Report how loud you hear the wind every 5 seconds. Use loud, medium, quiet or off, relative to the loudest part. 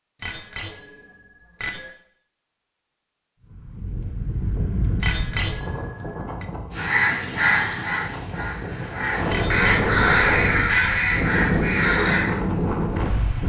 medium, medium, loud.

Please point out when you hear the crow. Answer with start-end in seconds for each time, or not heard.
6.7-12.3.